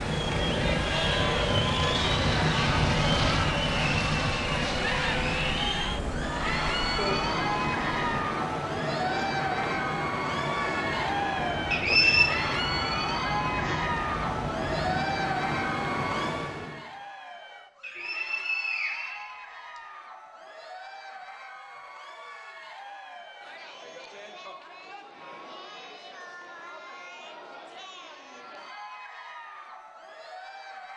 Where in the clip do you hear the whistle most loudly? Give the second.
12 s.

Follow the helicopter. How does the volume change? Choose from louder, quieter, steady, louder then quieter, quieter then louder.
quieter.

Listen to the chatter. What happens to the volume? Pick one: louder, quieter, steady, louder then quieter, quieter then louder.
quieter.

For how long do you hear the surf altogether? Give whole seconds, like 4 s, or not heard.
17 s.